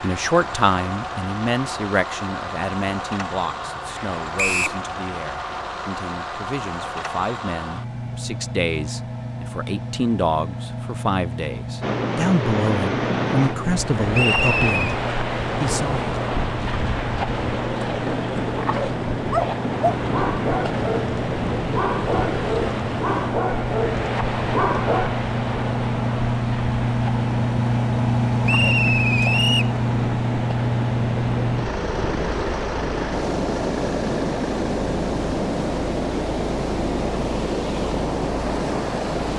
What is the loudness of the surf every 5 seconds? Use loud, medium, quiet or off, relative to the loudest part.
off, off, loud, loud, loud, medium, loud, loud.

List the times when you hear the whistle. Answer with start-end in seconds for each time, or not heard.
4.3-4.8, 14.1-14.9, 28.4-29.8.